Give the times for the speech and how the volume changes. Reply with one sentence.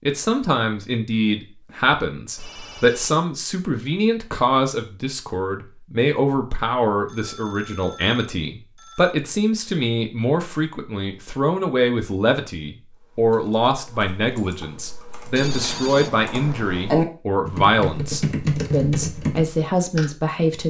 The speech can be heard from 0.1 to 20.6 s, at a steady volume.